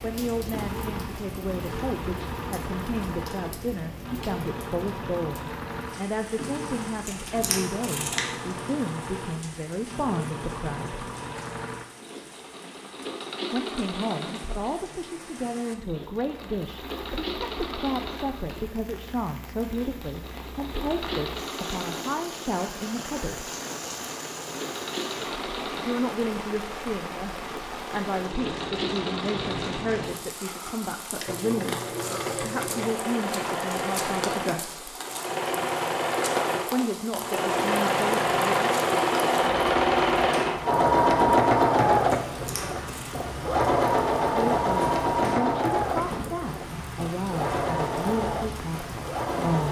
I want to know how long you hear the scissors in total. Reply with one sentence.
You can hear the scissors for 2 seconds altogether.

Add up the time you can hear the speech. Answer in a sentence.
The speech can be heard for 38 seconds in total.